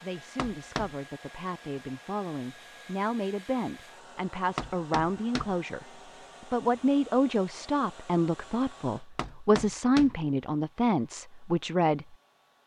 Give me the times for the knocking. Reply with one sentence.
You can hear the knocking from 0.3 to 0.9 s, from 4.5 to 5.6 s and from 9.2 to 10.2 s.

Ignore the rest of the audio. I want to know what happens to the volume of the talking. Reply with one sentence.
The volume of the talking goes up.